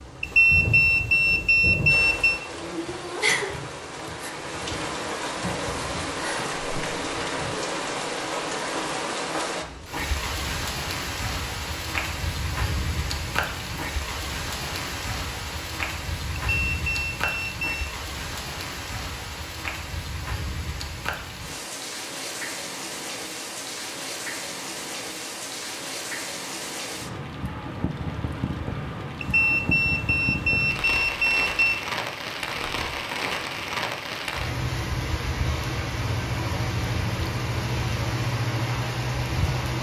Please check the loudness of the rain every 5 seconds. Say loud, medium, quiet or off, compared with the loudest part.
loud, loud, loud, medium, medium, medium, loud, loud.